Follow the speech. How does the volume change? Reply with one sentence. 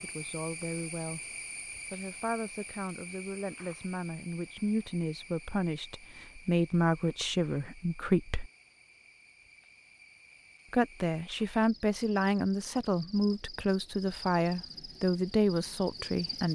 The loudness of the speech goes up.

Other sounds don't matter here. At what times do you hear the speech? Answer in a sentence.
The speech can be heard from 0.0 to 8.5 s and from 10.7 to 16.5 s.